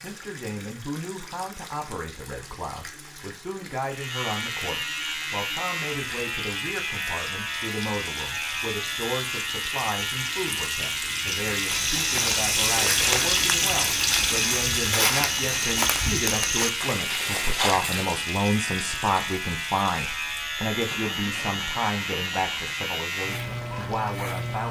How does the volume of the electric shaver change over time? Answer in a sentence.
The volume of the electric shaver stays about the same.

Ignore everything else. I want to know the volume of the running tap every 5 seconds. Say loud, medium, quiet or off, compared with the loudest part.
quiet, quiet, loud, medium, quiet.